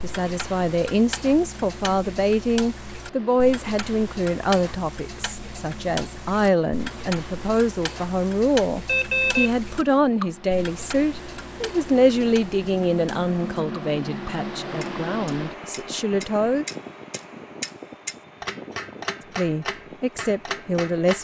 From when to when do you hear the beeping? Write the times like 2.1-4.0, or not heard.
8.8-10.0.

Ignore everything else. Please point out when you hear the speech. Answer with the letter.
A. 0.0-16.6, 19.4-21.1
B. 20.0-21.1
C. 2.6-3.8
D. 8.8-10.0
A.